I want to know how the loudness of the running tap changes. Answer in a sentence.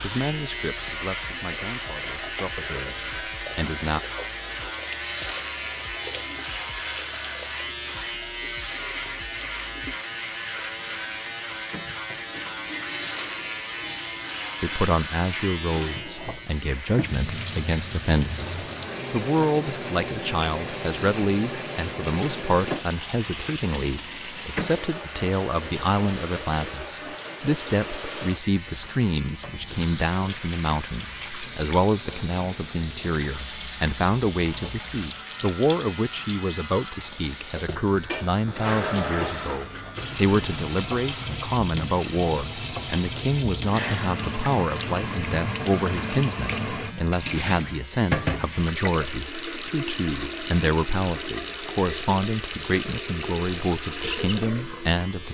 The volume of the running tap goes up.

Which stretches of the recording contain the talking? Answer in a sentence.
The talking can be heard from 0.0 to 4.0 s and from 14.6 to 55.2 s.